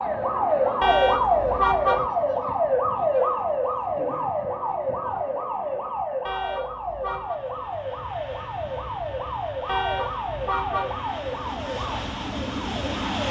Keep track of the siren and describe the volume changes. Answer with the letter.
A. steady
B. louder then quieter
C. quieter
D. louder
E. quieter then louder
C.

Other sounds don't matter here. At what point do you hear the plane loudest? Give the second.
13 s.